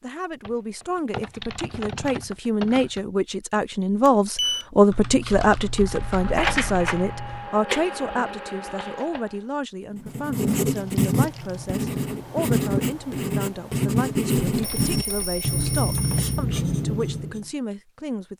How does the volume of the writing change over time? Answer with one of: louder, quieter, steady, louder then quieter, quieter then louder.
steady.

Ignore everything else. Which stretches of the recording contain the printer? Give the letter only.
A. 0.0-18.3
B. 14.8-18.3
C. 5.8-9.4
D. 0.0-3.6
C.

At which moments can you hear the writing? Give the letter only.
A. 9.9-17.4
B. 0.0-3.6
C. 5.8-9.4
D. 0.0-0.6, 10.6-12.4
A.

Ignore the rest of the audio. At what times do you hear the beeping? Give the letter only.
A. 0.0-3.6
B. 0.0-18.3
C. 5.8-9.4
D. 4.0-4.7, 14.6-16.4
D.